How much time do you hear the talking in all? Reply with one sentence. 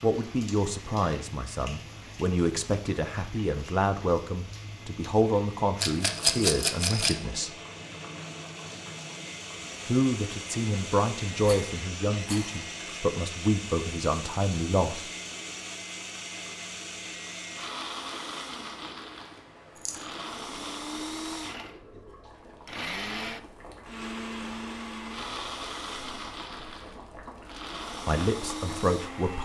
The talking can be heard for 14 seconds in total.